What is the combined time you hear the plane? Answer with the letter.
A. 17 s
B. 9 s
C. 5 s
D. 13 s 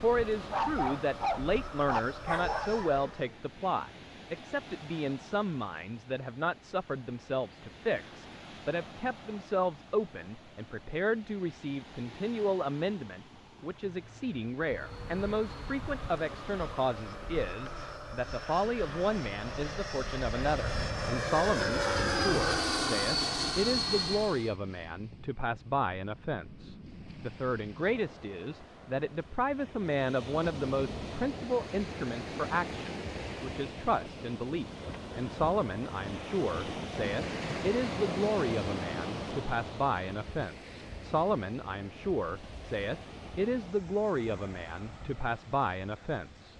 D.